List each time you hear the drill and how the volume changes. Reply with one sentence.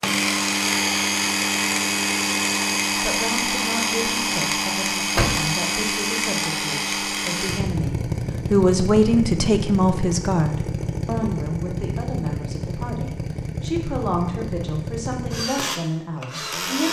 The drill can be heard from 0.0 to 16.8 s, getting quieter.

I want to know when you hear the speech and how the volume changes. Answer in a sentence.
The speech can be heard from 3.0 to 16.8 s, getting louder then quieter.